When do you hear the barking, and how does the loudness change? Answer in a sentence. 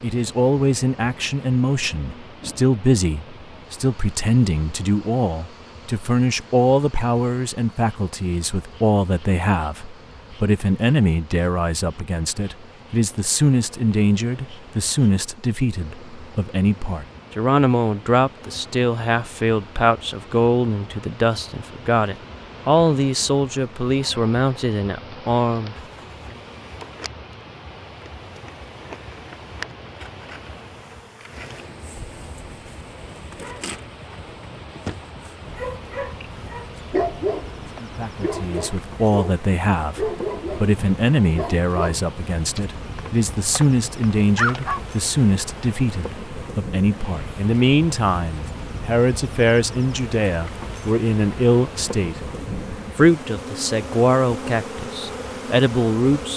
The barking can be heard from 33.4 to 44.8 s, getting louder then quieter.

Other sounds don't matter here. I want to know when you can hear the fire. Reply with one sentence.
You can't hear the fire here.